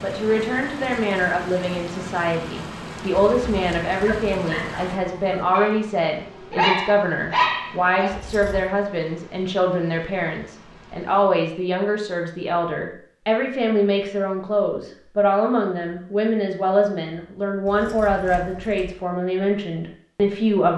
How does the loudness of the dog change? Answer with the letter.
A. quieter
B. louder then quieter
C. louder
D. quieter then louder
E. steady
D.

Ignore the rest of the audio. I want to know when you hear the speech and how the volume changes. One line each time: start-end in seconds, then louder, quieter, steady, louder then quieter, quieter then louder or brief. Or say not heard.
0.0-20.7 steady.